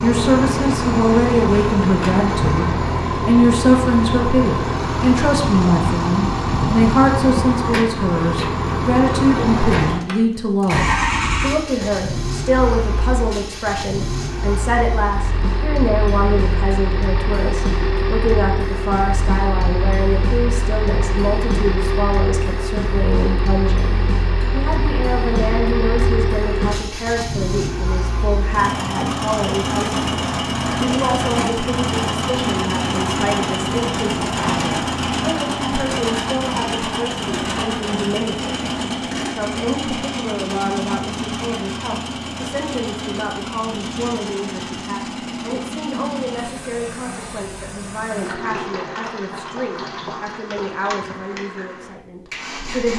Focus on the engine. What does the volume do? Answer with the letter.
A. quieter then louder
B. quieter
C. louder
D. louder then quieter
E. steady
B.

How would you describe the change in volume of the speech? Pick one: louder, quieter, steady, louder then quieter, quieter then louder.
quieter.